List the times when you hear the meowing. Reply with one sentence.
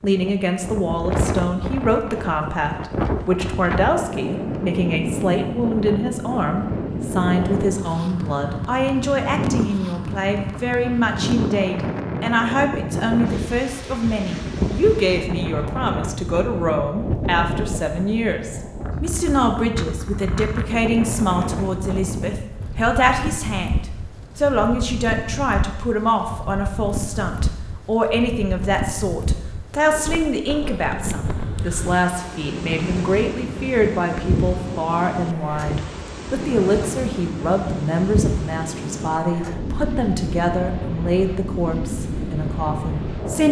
The meowing can't be heard in this clip.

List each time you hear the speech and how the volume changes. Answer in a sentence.
You can hear the speech from 0.0 to 43.4 s, at a steady volume.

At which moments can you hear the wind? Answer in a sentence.
You can hear the wind from 0.0 to 43.4 s.